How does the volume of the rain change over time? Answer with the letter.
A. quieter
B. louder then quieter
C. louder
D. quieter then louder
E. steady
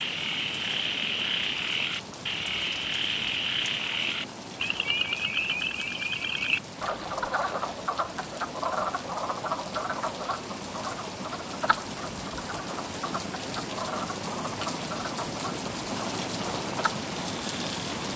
C.